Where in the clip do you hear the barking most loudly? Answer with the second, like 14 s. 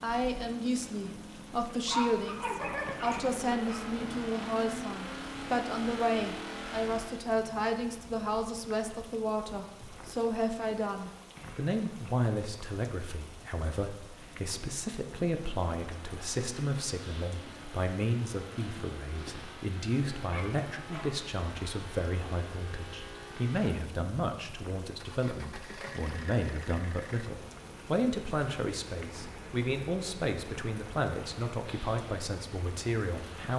2 s.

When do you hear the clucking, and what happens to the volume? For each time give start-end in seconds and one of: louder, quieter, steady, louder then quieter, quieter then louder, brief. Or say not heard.
not heard.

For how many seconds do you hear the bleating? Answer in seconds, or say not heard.
not heard.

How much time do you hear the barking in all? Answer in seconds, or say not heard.
3 s.